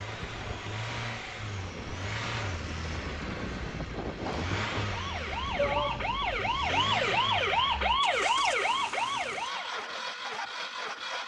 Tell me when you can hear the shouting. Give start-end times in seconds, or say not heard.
5.5-6.1.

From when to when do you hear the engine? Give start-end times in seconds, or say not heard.
0.0-11.2.